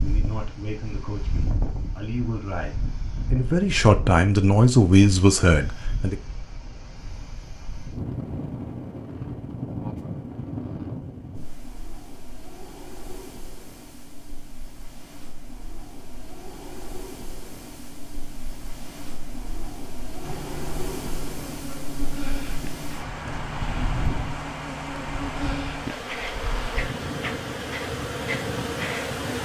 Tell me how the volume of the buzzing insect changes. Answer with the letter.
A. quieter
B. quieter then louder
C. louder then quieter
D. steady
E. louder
E.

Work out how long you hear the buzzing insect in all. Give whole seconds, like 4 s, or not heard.
9 s.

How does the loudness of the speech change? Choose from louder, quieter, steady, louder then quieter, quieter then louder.
louder.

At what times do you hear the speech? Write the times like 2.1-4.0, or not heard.
0.0-6.2.